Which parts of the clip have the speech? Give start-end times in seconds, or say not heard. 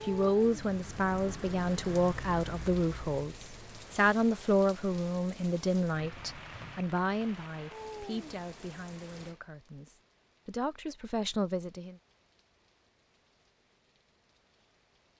0.0-11.9.